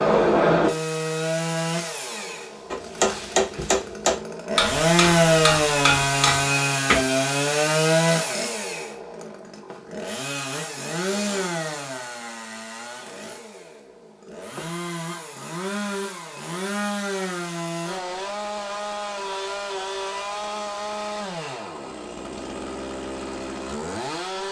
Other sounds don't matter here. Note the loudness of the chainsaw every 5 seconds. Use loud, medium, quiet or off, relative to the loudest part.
loud, loud, medium, medium, medium.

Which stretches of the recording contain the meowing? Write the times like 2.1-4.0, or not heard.
not heard.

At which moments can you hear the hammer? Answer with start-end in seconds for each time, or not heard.
2.7-7.0.